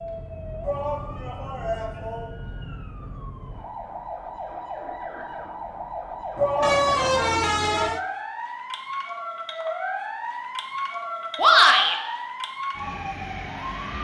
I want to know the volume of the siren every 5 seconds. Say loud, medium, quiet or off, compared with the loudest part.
medium, loud, loud.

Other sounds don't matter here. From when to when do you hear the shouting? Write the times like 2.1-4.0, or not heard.
0.6-2.3, 6.3-7.3, 11.3-11.9.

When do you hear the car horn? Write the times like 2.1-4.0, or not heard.
6.6-8.0.